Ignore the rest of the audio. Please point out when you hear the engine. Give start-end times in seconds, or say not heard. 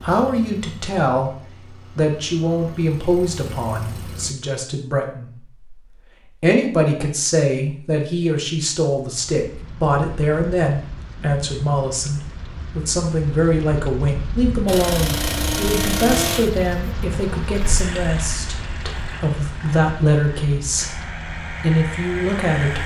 0.0-4.3, 14.7-22.8.